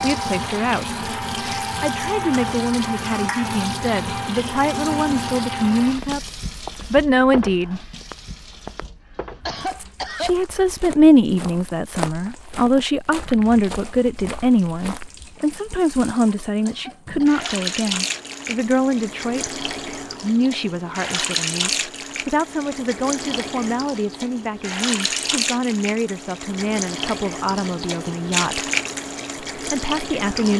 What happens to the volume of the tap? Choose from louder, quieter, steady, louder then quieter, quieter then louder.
quieter then louder.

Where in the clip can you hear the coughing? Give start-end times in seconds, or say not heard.
9.4-10.3, 16.6-17.4.